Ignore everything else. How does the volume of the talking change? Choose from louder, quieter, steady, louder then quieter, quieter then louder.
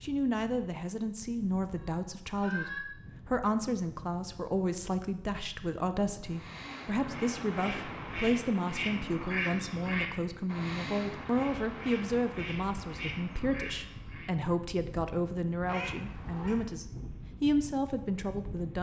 steady.